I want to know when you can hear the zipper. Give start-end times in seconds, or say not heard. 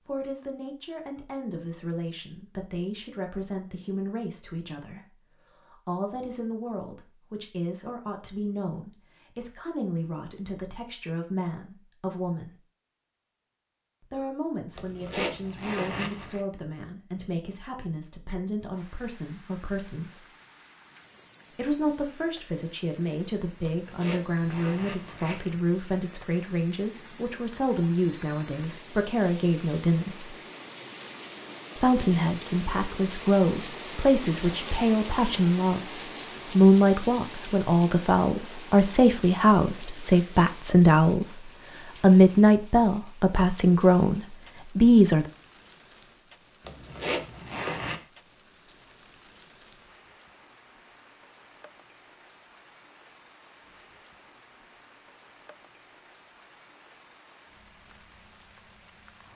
14.8-16.4, 23.6-25.6, 46.6-48.0.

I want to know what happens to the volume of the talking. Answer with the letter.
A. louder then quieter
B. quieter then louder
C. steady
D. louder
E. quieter
D.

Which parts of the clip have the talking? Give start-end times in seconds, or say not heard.
0.1-12.6, 14.0-20.2, 21.5-30.4, 31.8-45.3.